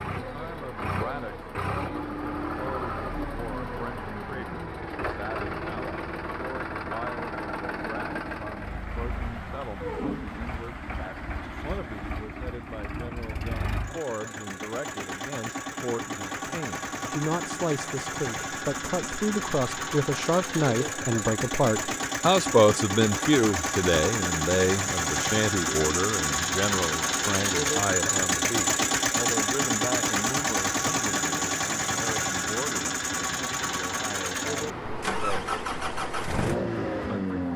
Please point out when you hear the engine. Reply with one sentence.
The engine can be heard from 0.0 to 37.5 s.